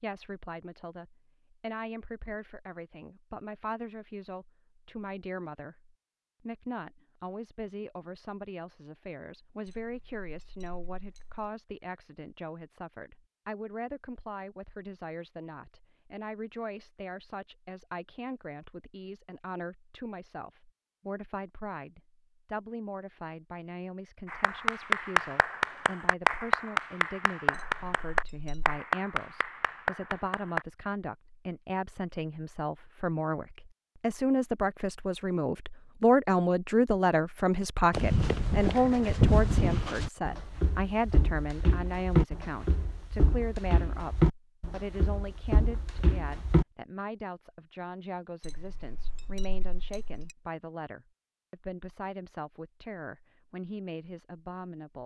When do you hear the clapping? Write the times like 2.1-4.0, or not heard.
24.2-30.6.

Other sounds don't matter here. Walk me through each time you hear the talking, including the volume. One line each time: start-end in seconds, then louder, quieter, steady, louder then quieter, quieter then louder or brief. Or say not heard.
0.0-55.0 louder then quieter.